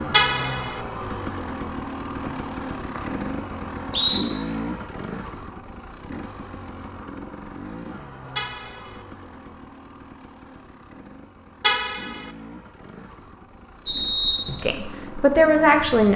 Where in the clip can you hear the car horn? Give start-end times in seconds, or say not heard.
0.1-0.8, 8.3-9.0, 11.6-12.3.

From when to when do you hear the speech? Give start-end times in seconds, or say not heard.
14.7-16.1.